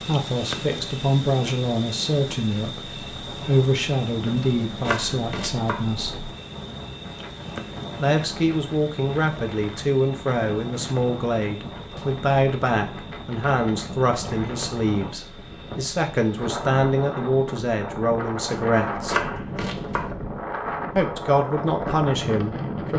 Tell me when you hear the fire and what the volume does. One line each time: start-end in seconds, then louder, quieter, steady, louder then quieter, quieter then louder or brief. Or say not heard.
not heard.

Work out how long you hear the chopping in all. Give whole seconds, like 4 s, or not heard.
3 s.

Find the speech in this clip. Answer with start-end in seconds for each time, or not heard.
0.0-6.3, 8.0-19.2, 20.9-22.9.